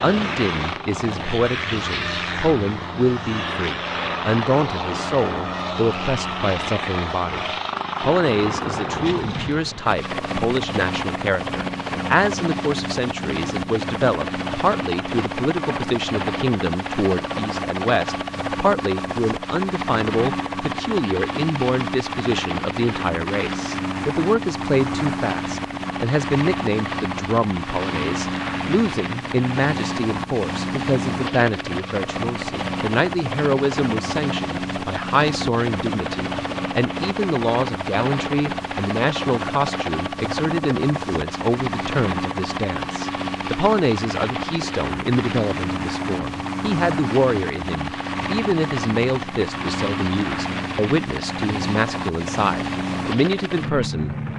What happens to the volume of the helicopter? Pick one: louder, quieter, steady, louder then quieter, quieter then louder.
steady.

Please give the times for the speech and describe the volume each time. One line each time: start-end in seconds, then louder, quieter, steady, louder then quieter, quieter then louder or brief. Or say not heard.
0.0-54.1 steady.